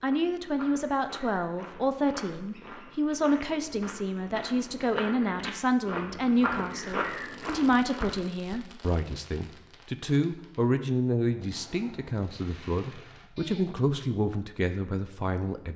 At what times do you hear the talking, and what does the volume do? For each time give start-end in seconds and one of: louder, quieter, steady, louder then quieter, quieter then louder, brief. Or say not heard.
0.0-15.7 steady.